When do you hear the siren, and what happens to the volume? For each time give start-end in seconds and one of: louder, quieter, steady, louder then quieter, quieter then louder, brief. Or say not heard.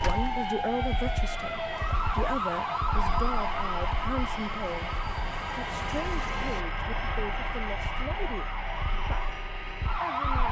0.0-10.4 quieter.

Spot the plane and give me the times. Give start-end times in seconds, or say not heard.
0.0-10.4.